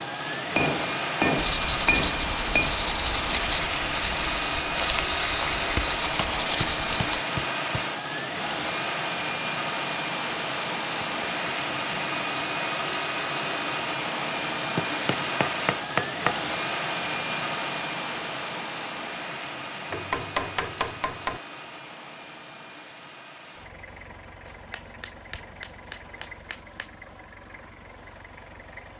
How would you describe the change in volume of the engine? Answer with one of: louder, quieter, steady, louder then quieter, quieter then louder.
quieter.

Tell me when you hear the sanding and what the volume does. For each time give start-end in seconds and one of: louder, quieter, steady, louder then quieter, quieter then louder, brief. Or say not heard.
1.4-7.2 steady.